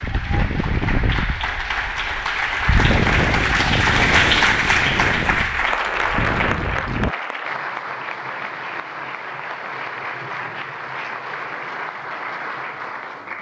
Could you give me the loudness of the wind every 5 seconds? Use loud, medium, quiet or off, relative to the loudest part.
loud, loud, off.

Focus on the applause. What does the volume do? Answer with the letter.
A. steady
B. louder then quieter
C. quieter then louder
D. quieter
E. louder
B.